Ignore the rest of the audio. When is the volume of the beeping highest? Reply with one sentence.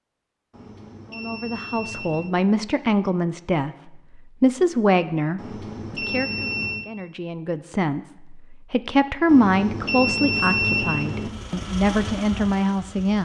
The loudest moment of the beeping is at 11 seconds.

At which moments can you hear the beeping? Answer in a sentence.
The beeping can be heard from 0.5 to 2.4 s, from 5.3 to 6.8 s and from 9.2 to 11.3 s.